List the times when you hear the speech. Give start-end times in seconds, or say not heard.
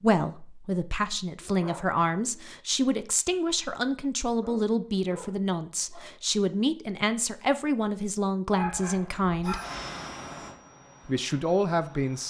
0.0-9.6, 11.1-12.2.